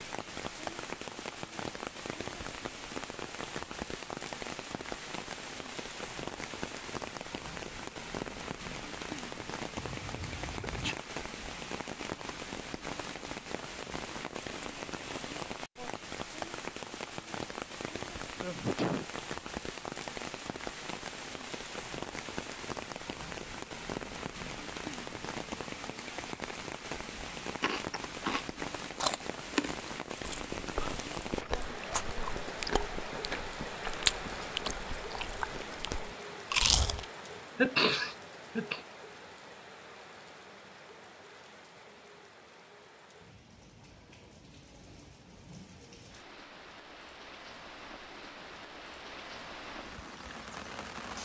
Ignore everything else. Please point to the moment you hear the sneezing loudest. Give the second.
38 s.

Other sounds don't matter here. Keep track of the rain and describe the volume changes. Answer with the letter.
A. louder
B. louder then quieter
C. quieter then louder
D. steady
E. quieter
E.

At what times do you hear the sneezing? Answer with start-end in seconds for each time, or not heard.
9.8-10.9, 18.4-19.1, 37.5-38.8.